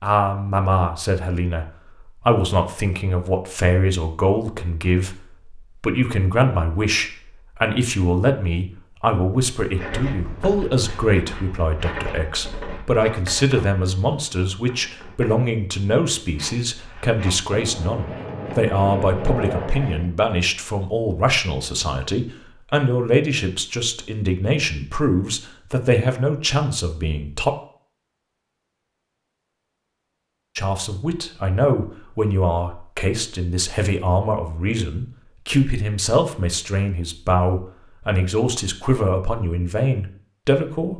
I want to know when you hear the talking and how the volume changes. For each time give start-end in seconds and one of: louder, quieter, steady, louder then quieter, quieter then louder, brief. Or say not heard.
0.0-27.5 steady
30.6-40.9 steady.